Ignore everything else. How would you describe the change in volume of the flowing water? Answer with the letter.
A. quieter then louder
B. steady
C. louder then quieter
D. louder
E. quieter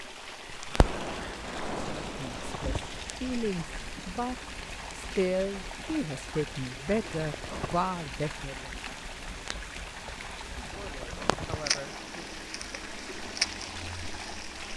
B.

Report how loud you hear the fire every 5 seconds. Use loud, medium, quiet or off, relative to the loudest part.
loud, quiet, loud.